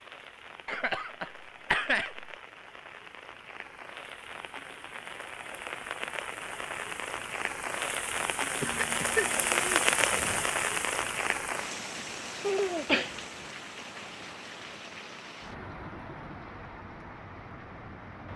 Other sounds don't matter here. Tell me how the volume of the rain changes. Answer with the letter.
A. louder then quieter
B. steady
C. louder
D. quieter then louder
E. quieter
A.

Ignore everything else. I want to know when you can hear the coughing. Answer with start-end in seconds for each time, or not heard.
0.7-2.3, 8.6-10.4, 12.8-13.5.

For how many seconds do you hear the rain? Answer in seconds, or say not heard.
18 s.